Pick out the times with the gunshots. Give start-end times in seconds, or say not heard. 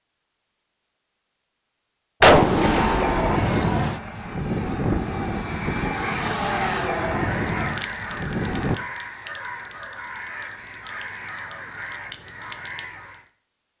2.2-3.4.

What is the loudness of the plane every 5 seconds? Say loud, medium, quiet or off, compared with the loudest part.
loud, loud, off.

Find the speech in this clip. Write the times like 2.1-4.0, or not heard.
not heard.